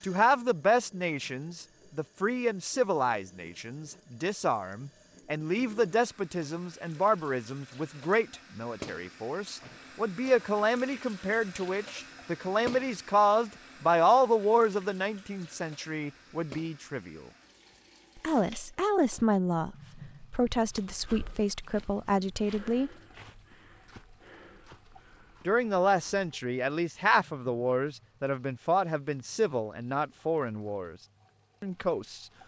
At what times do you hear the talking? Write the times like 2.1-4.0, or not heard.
0.0-17.3, 18.2-22.9, 25.4-30.9, 31.6-32.2.